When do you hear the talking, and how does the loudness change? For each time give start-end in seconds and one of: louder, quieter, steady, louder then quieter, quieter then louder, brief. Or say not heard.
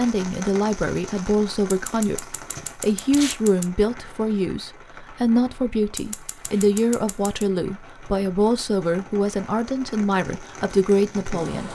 0.0-11.6 steady.